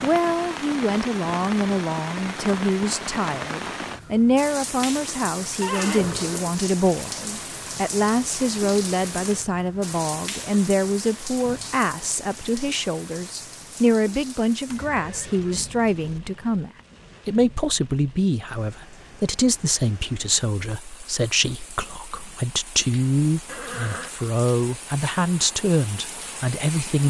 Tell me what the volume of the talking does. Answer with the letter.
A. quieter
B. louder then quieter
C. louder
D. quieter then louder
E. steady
E.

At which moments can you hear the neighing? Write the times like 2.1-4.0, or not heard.
5.6-6.5, 14.7-16.2, 23.4-24.1.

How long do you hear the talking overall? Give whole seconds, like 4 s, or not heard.
27 s.